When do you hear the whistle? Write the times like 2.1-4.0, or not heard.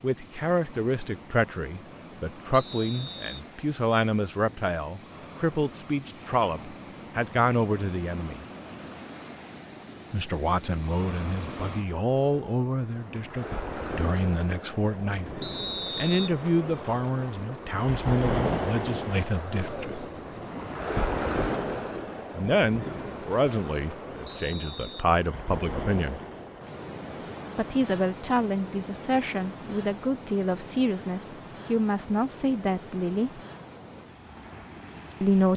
2.5-3.4, 15.4-16.4, 24.2-25.1.